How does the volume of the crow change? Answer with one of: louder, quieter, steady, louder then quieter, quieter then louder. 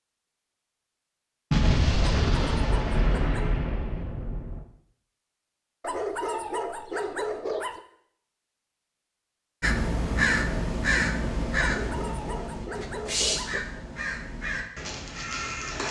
quieter.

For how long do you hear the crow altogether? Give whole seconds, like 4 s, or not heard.
6 s.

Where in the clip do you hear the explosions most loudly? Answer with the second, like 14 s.
2 s.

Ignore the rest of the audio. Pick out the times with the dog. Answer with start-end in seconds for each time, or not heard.
2.2-3.6, 5.8-7.8, 11.6-13.6.